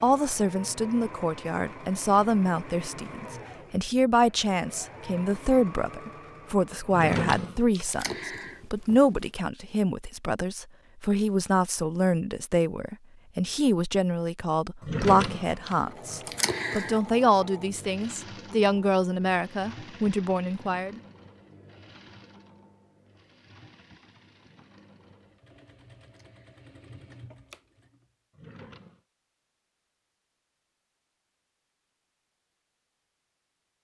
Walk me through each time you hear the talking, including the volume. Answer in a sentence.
You can hear the talking from 0.0 to 21.0 s, at a steady volume.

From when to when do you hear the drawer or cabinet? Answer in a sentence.
The drawer or cabinet can be heard from 6.9 to 7.8 s, from 14.8 to 16.2 s and from 28.3 to 29.0 s.